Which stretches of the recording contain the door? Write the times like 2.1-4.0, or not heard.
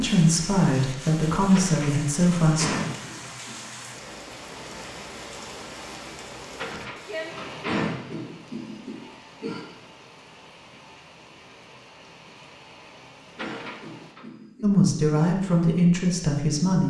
1.4-3.2, 6.5-8.3, 13.2-14.2.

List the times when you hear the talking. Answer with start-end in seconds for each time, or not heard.
0.0-2.7, 14.6-16.8.